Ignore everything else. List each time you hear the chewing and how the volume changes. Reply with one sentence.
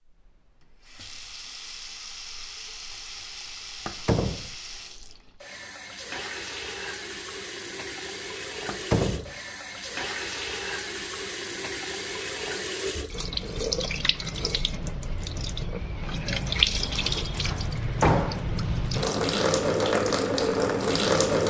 The chewing can't be heard in this clip.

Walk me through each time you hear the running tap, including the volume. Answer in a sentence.
You can hear the running tap from 0.0 to 21.4 s, getting louder.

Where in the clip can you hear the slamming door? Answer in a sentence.
The slamming door can be heard from 3.9 to 4.5 s, from 8.7 to 9.3 s and from 16.8 to 18.6 s.